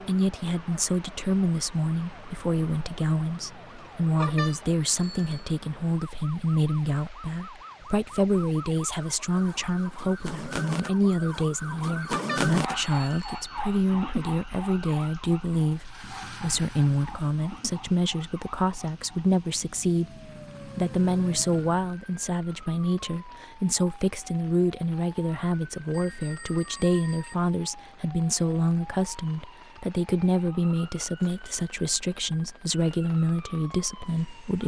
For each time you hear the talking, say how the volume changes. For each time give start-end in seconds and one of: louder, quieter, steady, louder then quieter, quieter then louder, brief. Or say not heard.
0.0-34.6 steady.